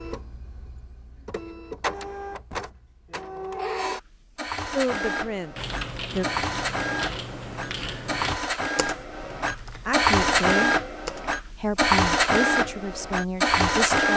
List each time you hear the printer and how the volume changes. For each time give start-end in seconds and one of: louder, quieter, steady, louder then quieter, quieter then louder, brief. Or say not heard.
0.0-14.1 louder.